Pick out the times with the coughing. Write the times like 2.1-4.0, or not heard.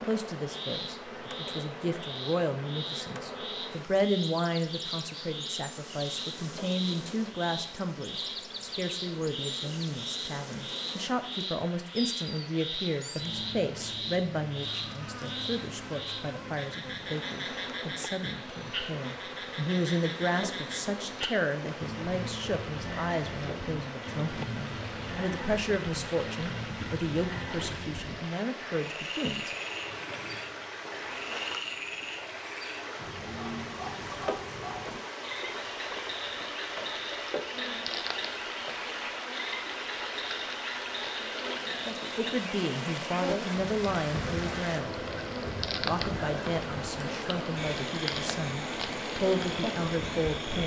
not heard.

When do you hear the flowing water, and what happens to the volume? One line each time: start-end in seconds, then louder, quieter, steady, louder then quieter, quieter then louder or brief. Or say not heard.
0.0-50.6 louder.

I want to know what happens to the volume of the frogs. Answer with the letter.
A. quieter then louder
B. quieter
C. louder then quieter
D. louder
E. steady
E.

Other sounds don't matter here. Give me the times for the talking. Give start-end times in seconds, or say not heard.
0.0-29.6, 42.1-45.0, 45.8-50.6.